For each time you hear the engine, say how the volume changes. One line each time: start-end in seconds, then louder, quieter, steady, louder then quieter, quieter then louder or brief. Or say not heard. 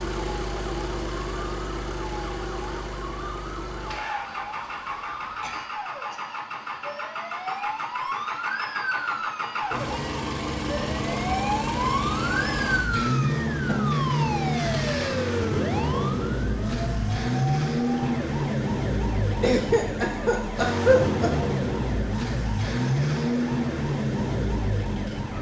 0.0-25.3 louder.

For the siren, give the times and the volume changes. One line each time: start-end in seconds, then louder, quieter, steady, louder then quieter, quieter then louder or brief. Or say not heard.
0.0-25.3 louder then quieter.